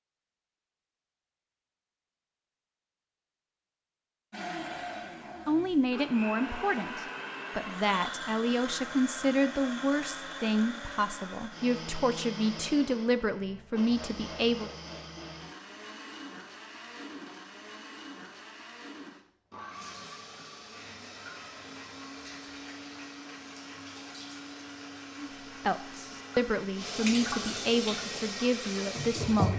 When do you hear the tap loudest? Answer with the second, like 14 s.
29 s.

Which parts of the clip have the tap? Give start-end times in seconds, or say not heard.
19.6-29.5.